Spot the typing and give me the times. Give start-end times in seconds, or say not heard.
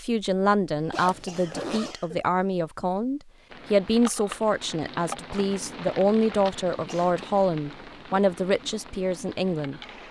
not heard.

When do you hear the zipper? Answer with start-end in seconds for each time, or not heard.
0.9-1.9.